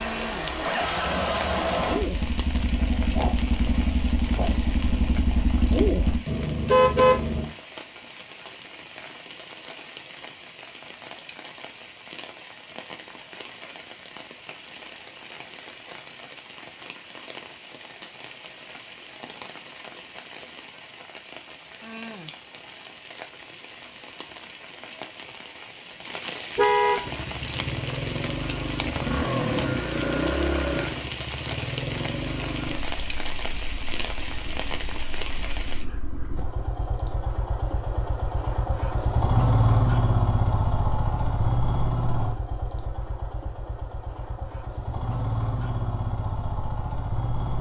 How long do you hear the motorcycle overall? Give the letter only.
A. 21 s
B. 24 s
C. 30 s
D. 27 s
D.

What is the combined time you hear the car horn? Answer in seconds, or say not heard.
2 s.